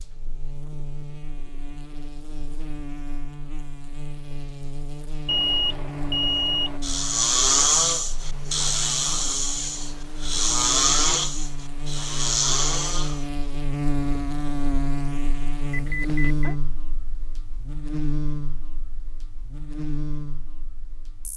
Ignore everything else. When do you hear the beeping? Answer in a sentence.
You can hear the beeping from 5.2 to 6.8 s and from 15.7 to 16.6 s.